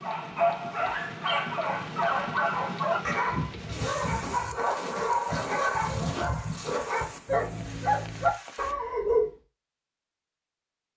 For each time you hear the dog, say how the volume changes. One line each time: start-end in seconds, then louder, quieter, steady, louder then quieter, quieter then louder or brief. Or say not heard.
0.0-9.3 steady.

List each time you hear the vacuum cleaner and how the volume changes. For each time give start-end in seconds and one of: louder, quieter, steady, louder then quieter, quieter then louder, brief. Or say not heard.
not heard.